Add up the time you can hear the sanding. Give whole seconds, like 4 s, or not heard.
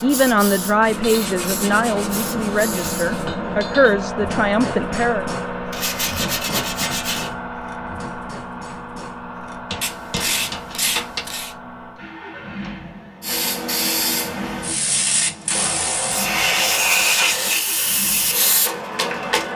8 s.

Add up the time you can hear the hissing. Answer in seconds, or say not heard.
10 s.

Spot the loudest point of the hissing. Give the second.
17 s.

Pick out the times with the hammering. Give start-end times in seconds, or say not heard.
0.8-11.2.